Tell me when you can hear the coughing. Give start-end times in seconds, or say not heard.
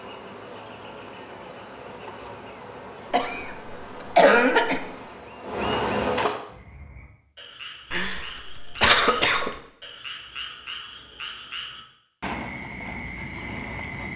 3.1-4.8, 7.9-9.5.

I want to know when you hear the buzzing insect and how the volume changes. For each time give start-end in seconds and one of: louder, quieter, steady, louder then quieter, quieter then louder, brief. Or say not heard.
0.0-6.4 louder.